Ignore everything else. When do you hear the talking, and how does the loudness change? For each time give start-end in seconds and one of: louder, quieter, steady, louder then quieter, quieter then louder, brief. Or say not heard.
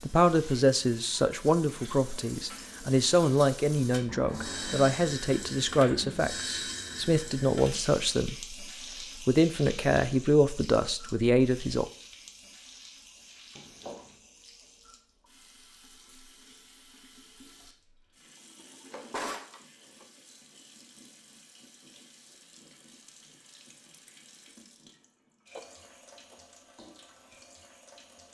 0.0-8.6 steady
9.2-11.8 brief.